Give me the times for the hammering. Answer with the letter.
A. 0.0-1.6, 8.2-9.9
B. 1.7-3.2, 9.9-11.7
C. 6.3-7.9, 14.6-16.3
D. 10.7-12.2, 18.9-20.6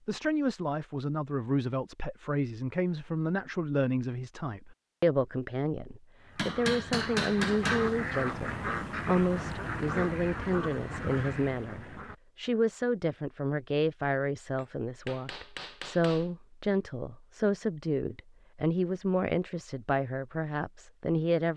C.